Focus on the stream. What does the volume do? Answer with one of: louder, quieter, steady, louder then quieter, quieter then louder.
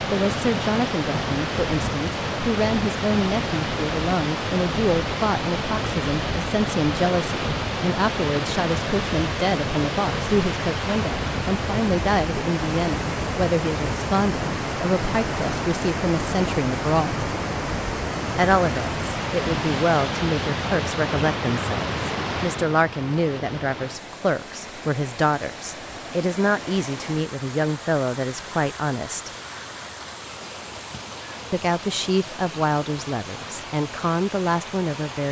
quieter.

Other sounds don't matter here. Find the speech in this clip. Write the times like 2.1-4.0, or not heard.
0.1-17.2, 18.4-29.3, 31.5-35.2.